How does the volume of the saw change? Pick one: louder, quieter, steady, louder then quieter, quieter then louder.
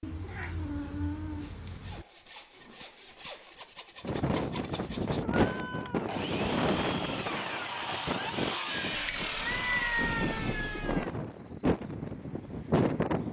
louder.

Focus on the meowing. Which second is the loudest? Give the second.
10 s.